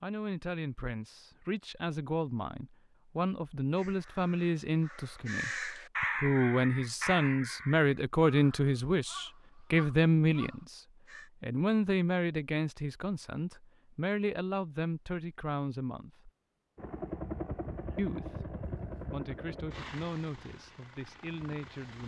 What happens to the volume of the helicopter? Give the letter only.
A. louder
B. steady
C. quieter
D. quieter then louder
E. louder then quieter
C.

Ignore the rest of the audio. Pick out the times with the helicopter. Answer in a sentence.
The helicopter can be heard from 16.8 to 22.0 s.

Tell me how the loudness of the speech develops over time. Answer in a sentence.
The volume of the speech goes up, then down.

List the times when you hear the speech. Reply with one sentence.
The speech can be heard from 0.0 to 16.3 s and from 17.9 to 22.0 s.